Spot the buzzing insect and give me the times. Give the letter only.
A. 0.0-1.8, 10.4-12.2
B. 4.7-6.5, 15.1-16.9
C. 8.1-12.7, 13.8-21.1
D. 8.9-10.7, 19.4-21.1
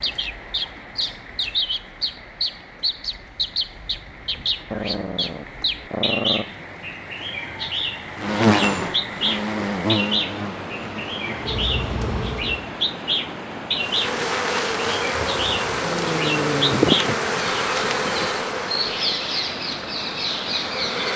C.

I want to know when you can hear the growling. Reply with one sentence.
The growling can be heard from 4.7 to 6.5 s and from 15.1 to 16.9 s.